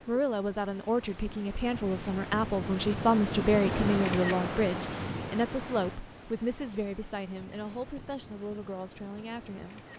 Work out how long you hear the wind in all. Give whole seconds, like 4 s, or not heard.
10 s.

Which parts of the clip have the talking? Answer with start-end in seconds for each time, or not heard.
0.1-9.9.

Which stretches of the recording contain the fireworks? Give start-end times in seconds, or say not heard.
not heard.